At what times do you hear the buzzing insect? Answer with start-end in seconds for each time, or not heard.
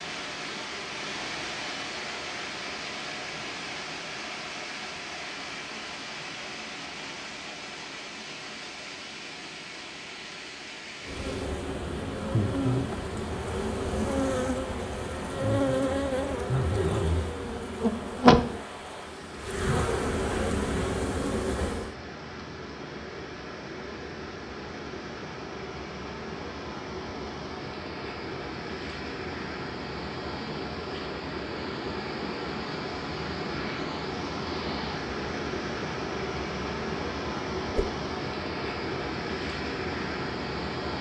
11.0-21.9.